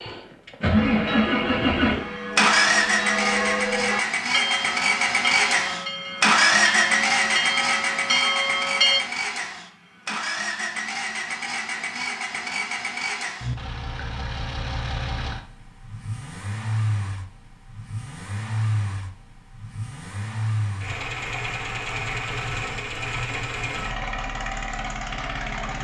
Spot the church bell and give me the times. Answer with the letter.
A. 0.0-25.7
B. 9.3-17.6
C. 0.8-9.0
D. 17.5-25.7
C.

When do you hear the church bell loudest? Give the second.
9 s.